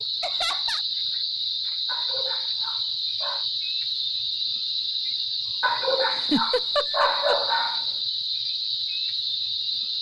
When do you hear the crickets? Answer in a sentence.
The crickets can be heard from 0.0 to 9.9 s.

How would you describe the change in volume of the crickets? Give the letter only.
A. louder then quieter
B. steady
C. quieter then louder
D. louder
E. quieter
B.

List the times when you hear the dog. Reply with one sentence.
You can hear the dog from 1.9 to 3.5 s and from 5.6 to 7.8 s.